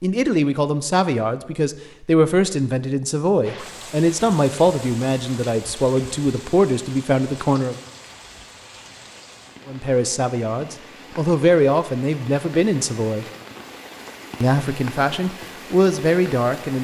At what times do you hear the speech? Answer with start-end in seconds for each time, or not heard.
0.0-7.8, 9.7-13.2, 14.4-16.7.